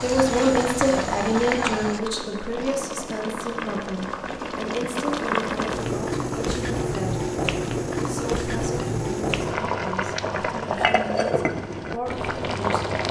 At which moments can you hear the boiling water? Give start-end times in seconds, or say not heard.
0.0-13.0.